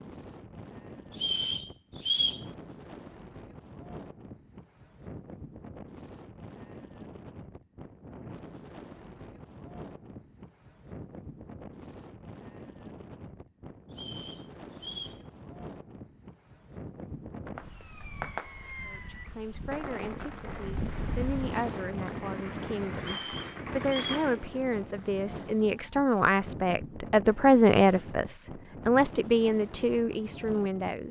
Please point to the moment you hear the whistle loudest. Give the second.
2 s.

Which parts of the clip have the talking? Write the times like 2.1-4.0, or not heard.
18.8-31.0.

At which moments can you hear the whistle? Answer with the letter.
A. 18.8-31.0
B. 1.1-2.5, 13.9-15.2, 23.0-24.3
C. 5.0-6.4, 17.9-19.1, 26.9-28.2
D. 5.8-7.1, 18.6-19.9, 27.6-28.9
B.